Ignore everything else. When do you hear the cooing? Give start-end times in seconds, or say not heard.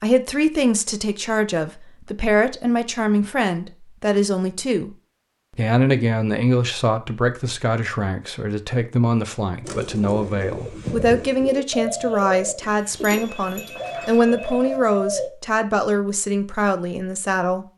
9.6-15.3.